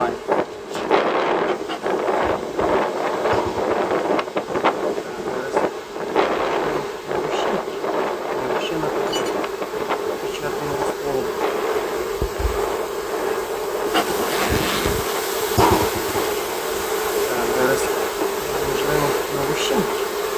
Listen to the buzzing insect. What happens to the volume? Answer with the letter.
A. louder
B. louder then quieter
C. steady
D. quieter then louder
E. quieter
A.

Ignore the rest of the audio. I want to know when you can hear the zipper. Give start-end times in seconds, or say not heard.
14.1-15.2.